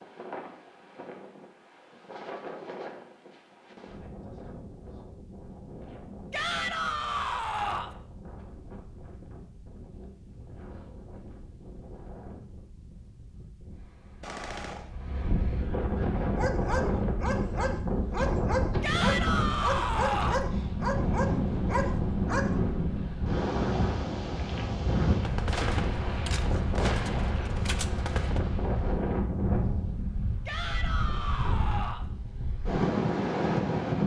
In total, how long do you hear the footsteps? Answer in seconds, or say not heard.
not heard.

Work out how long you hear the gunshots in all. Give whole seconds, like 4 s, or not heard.
4 s.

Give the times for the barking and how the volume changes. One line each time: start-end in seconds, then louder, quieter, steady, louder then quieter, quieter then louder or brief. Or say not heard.
16.4-22.6 steady.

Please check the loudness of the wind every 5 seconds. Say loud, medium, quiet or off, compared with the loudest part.
quiet, quiet, quiet, loud, loud, loud, loud.